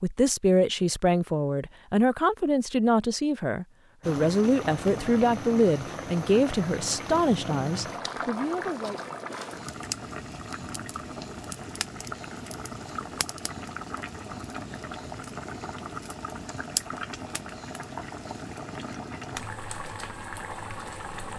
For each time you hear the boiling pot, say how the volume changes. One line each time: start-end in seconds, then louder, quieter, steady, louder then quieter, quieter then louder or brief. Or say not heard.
4.0-21.3 steady.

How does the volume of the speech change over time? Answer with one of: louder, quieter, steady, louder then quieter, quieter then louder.
steady.